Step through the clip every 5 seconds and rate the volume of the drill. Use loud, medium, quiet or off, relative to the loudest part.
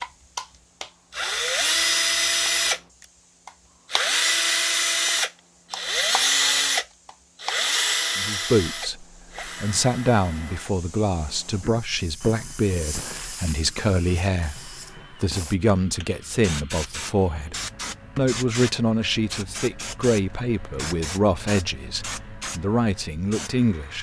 loud, loud, quiet, quiet, quiet.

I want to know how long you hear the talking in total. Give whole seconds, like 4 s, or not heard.
15 s.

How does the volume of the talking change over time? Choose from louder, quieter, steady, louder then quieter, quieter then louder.
steady.